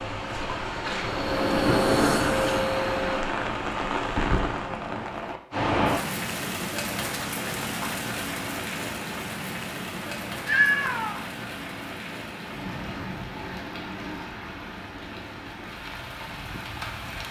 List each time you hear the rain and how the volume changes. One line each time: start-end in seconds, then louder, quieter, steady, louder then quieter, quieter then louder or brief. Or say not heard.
0.0-17.2 quieter.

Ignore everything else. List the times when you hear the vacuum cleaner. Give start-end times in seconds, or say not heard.
0.0-3.4.